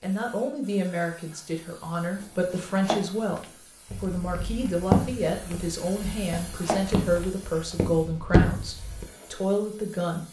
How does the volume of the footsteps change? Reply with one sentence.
The loudness of the footsteps goes down, then up.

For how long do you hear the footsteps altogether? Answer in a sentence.
The footsteps can be heard for 5 seconds in total.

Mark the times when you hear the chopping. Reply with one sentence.
You can hear the chopping from 2.1 to 3.5 s and from 6.0 to 7.3 s.